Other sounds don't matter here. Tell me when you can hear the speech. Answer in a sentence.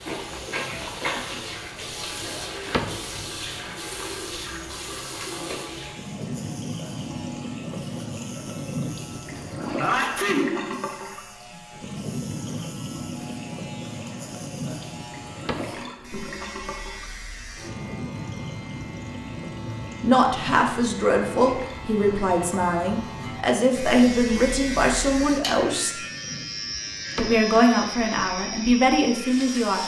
You can hear the speech from 20.0 to 25.9 s and from 27.1 to 29.8 s.